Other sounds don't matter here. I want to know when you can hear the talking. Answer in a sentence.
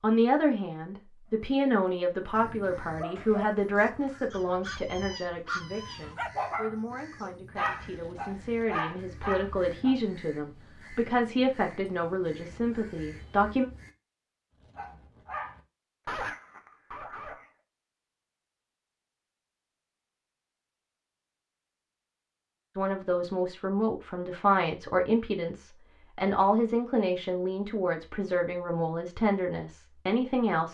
You can hear the talking from 0.0 to 13.7 s and from 22.8 to 30.7 s.